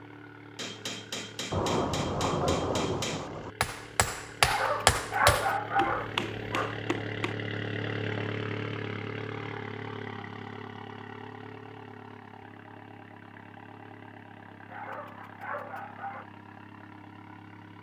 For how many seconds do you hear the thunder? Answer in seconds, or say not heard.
2 s.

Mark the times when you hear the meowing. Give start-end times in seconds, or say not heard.
not heard.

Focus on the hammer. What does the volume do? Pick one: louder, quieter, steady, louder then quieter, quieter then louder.
louder then quieter.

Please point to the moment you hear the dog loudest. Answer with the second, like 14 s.
5 s.